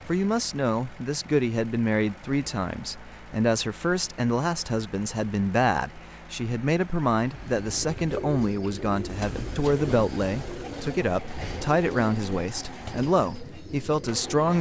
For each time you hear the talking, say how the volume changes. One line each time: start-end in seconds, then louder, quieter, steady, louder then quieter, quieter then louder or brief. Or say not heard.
0.1-14.5 steady.